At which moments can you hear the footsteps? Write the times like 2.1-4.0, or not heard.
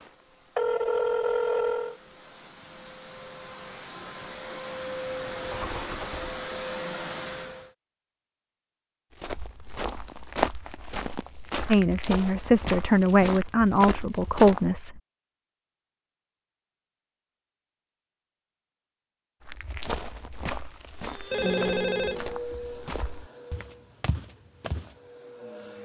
9.2-14.8, 19.4-24.9.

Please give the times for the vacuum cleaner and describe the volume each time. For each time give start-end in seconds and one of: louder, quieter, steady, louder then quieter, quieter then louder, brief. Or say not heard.
0.0-7.8 louder
20.9-25.8 quieter then louder.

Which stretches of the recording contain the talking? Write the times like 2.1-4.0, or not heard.
11.7-14.9.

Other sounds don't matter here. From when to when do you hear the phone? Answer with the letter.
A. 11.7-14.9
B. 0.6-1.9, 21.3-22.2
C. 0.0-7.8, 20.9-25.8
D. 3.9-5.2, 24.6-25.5
B.